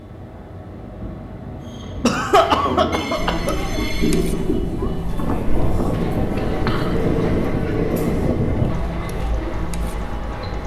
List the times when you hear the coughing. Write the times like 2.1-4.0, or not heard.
2.0-3.5, 6.3-7.0.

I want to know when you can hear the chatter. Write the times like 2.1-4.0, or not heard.
3.1-10.6.